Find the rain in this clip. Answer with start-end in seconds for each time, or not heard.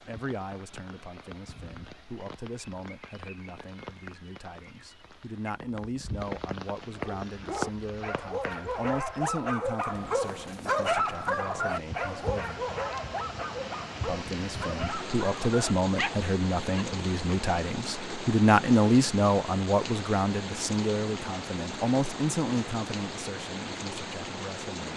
0.0-24.9.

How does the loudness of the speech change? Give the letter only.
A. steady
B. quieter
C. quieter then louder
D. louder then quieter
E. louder
D.